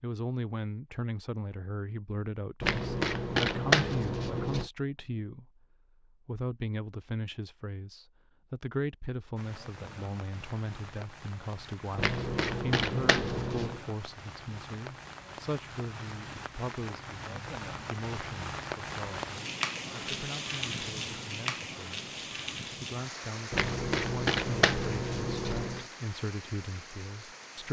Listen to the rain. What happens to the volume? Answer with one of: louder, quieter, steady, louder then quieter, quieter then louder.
louder then quieter.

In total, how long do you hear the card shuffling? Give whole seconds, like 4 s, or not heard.
6 s.